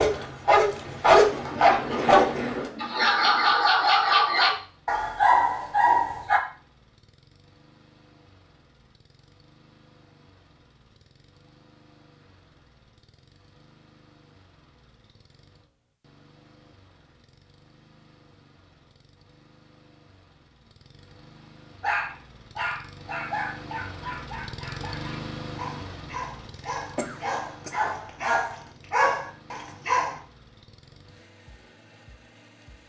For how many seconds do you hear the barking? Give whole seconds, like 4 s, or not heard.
15 s.